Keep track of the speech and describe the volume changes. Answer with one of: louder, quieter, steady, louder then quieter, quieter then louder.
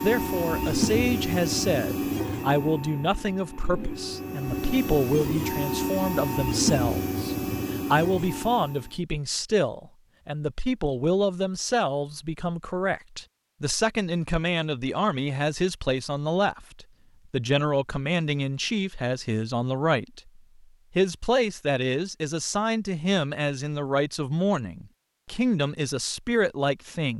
steady.